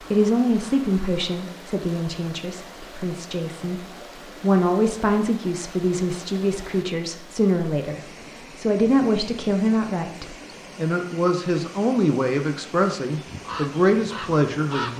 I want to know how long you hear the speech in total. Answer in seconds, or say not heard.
15 s.